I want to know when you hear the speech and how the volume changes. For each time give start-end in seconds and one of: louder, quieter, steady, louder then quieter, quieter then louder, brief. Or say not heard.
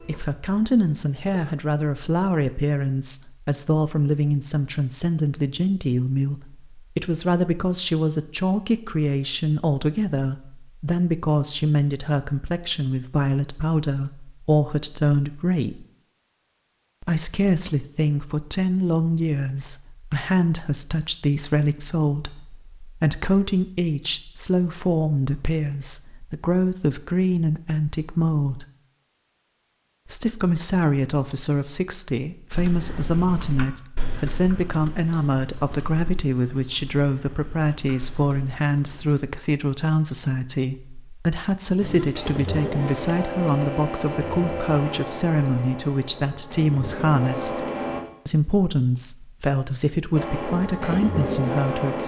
0.0-15.8 steady
17.0-28.6 steady
30.1-52.0 steady.